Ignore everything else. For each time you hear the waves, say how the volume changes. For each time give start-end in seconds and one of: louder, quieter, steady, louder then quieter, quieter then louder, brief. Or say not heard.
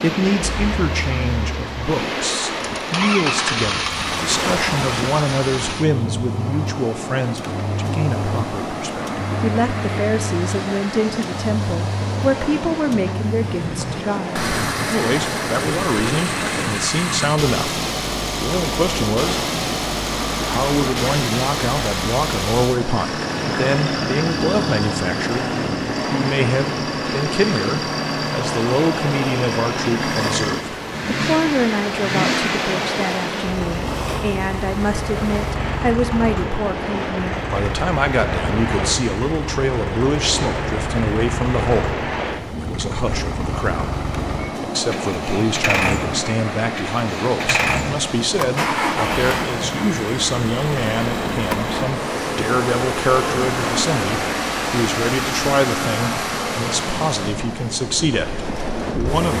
0.0-59.3 steady.